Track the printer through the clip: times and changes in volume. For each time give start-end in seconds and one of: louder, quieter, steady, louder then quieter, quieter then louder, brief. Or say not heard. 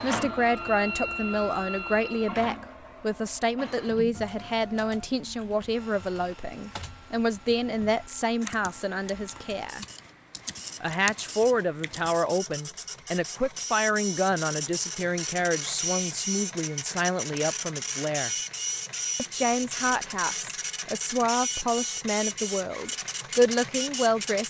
0.0-24.4 quieter then louder.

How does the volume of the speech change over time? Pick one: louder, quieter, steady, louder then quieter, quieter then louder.
steady.